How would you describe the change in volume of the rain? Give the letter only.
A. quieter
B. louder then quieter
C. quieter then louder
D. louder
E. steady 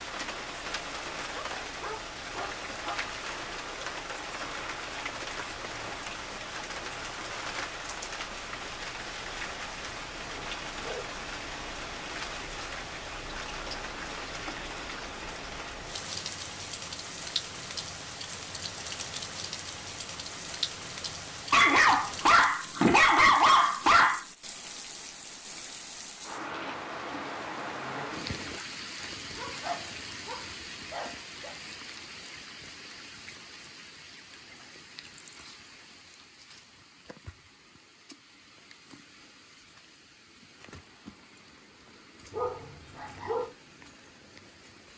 A.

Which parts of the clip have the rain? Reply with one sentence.
The rain can be heard from 0.0 to 44.9 s.